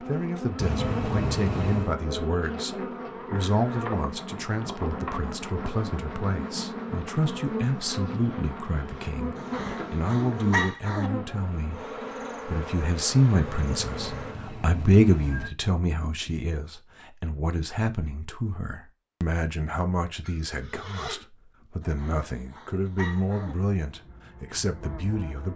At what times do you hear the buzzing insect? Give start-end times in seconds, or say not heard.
0.0-14.3, 23.3-25.5.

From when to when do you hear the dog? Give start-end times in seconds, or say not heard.
9.3-11.1, 21.8-23.6.